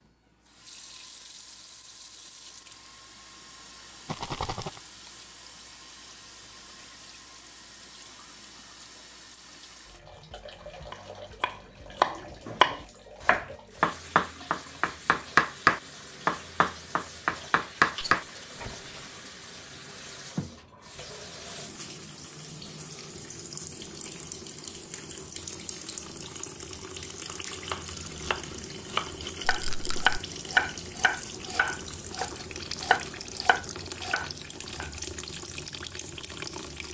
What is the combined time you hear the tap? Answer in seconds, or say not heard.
37 s.